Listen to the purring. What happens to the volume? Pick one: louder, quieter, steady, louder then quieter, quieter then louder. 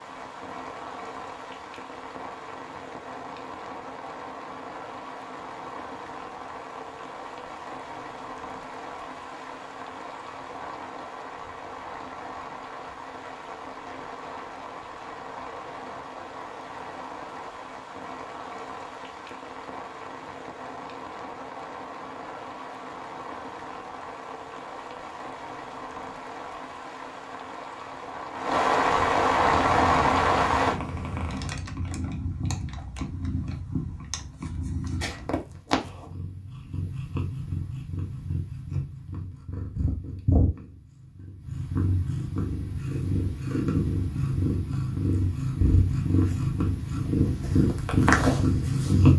louder.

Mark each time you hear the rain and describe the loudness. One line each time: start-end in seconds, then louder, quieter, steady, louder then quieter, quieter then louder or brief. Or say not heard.
0.0-30.8 louder.